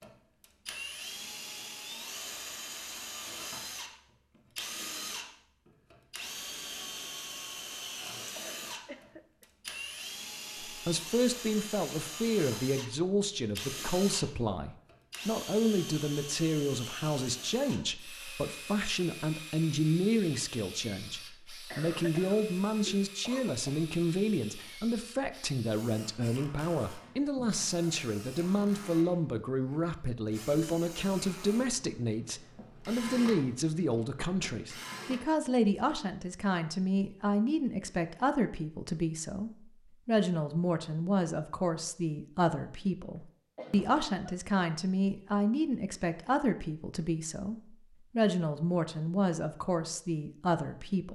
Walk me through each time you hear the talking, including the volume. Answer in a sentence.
The talking can be heard from 10.7 to 51.1 s, at a steady volume.